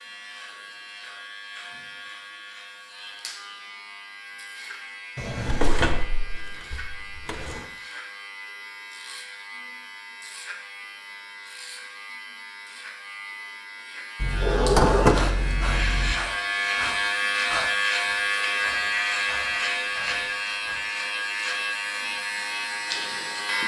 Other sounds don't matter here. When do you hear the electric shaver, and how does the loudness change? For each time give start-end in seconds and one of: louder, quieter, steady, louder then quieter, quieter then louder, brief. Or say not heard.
0.0-23.6 louder.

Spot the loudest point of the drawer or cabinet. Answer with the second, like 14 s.
15 s.